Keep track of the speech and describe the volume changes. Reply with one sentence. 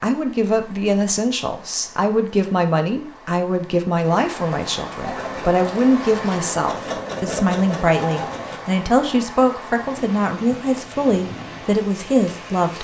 The loudness of the speech stays about the same.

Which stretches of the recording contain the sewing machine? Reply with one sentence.
You can hear the sewing machine from 5.0 to 8.6 s.